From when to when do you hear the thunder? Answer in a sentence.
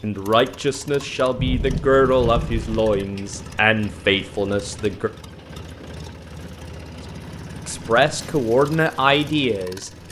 You can hear the thunder from 1.4 to 3.0 s.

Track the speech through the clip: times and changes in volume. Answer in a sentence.
The speech can be heard from 0.0 to 5.1 s, at a steady volume; and briefly from 7.7 to 9.9 s.